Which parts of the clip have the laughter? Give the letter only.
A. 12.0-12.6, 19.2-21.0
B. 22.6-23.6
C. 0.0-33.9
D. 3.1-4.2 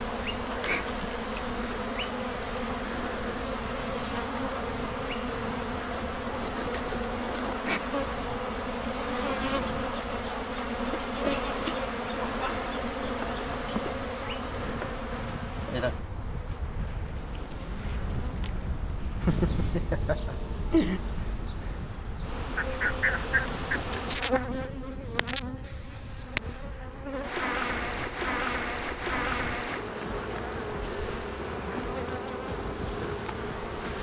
A.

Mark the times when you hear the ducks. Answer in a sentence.
You can hear the ducks from 22.6 to 23.6 s.